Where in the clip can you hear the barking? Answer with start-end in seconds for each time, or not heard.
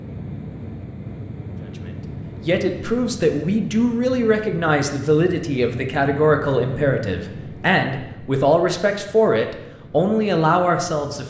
not heard.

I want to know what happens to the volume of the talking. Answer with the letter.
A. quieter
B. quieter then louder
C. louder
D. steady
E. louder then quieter
D.